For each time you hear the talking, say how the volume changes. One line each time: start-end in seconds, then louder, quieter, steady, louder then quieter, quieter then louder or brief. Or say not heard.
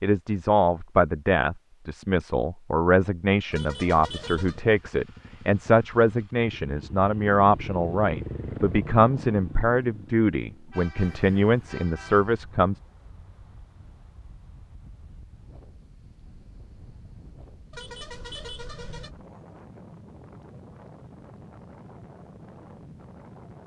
0.0-12.8 steady.